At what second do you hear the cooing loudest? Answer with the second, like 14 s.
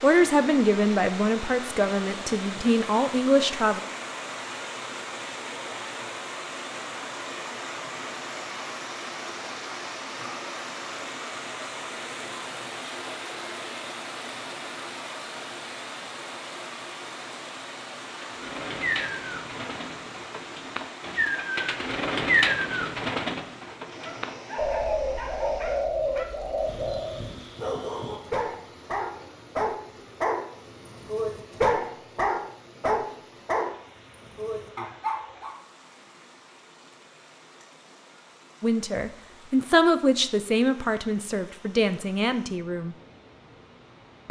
22 s.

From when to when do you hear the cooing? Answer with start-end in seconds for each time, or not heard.
18.1-27.2.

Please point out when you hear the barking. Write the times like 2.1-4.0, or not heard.
24.0-35.5.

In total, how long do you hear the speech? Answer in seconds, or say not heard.
8 s.